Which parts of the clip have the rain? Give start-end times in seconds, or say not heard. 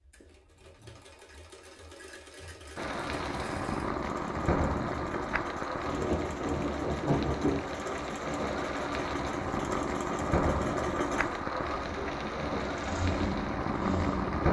2.8-14.4.